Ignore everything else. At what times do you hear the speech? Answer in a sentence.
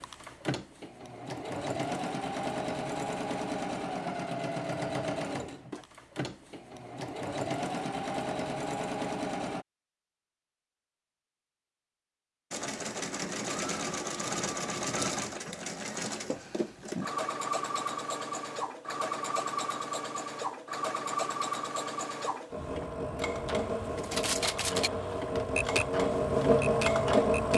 You can't hear the speech here.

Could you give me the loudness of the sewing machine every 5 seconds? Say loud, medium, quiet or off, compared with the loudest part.
medium, medium, medium, medium, medium, loud.